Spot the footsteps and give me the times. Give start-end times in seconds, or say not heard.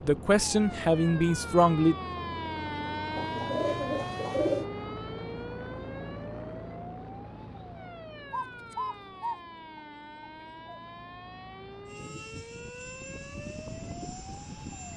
not heard.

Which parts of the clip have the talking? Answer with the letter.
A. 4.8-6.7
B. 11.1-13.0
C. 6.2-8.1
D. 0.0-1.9
D.